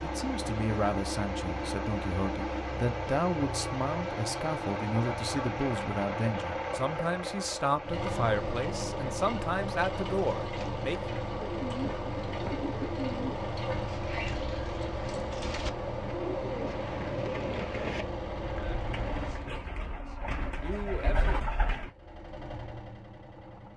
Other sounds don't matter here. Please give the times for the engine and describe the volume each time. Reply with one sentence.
The engine can be heard from 0.0 to 19.5 s, at a steady volume; and briefly from 21.9 to 23.7 s.